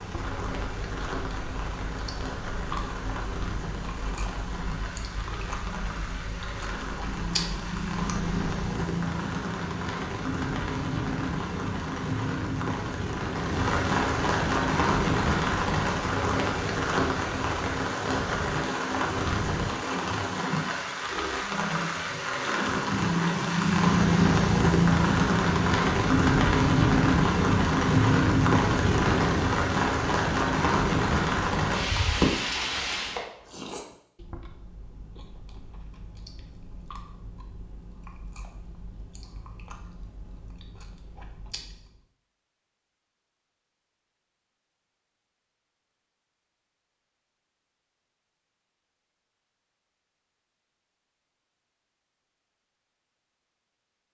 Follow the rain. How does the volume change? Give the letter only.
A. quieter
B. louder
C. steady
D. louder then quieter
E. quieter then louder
B.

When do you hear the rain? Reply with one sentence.
You can hear the rain from 0.0 to 33.2 s.